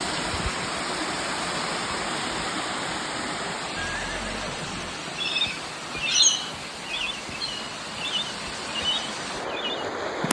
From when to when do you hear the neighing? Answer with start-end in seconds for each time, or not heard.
3.8-4.8.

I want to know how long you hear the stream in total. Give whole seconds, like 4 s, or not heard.
10 s.